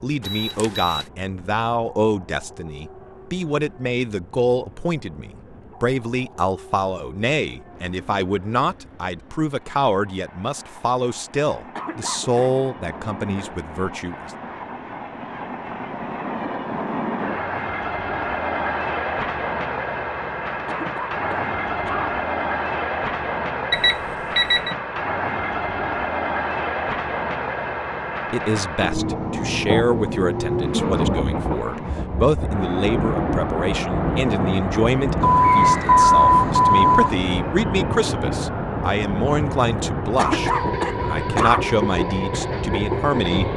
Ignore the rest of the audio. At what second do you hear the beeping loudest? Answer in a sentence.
The volume of the beeping peaks at 36 seconds.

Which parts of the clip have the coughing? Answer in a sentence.
The coughing can be heard from 11.8 to 12.5 s, from 20.6 to 22.1 s and from 40.1 to 41.8 s.